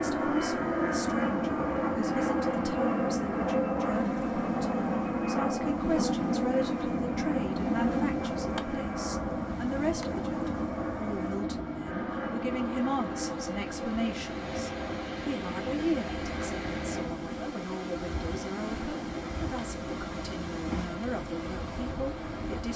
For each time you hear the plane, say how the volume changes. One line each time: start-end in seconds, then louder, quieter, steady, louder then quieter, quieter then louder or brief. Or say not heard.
0.0-22.7 quieter.